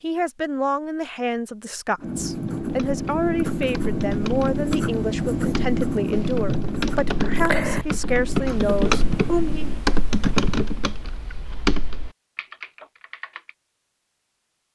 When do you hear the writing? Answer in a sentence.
The writing can be heard from 1.9 to 9.8 s.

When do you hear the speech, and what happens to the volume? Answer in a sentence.
The speech can be heard from 0.0 to 9.7 s, at a steady volume.